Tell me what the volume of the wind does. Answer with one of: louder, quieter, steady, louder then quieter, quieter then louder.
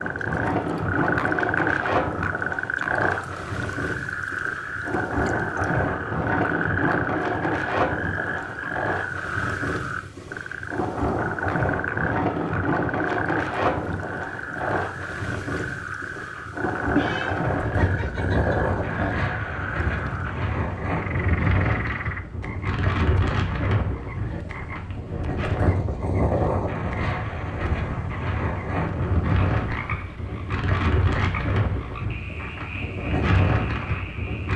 steady.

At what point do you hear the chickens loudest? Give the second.
17 s.